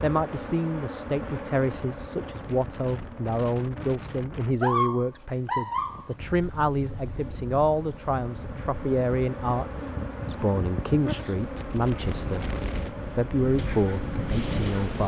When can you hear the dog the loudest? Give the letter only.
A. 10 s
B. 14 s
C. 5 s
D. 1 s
C.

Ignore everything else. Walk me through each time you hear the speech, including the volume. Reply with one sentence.
The speech can be heard from 0.0 to 15.0 s, at a steady volume.